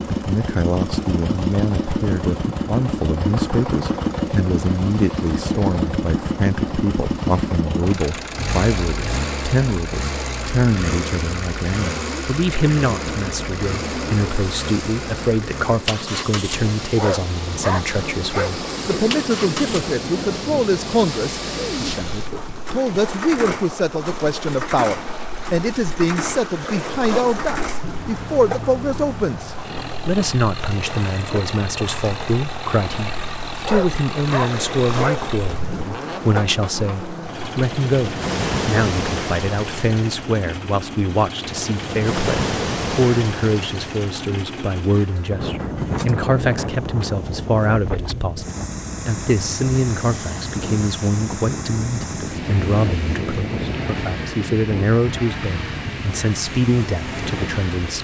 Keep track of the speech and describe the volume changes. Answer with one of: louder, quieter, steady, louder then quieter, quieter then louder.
steady.